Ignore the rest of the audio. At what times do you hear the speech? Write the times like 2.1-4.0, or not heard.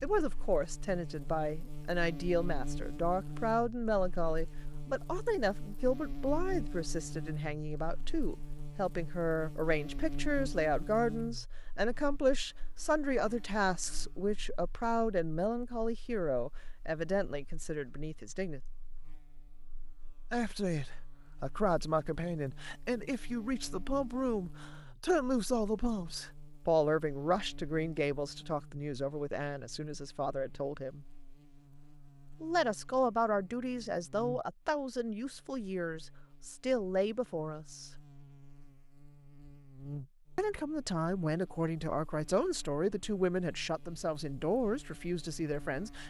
0.0-18.6, 20.3-31.1, 32.4-37.9, 40.4-46.0.